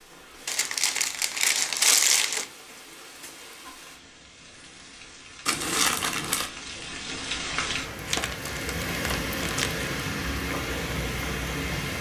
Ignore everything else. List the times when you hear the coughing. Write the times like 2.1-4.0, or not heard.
not heard.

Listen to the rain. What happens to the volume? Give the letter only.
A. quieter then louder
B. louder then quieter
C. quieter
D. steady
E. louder
E.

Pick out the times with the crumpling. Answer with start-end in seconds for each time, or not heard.
0.5-2.5, 5.5-6.5, 8.1-9.8.